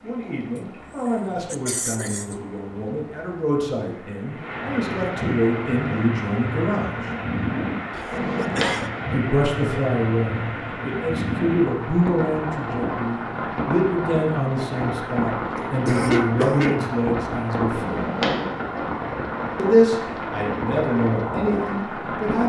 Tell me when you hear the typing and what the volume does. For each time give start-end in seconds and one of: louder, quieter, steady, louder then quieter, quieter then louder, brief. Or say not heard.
not heard.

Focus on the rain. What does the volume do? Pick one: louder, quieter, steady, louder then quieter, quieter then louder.
louder.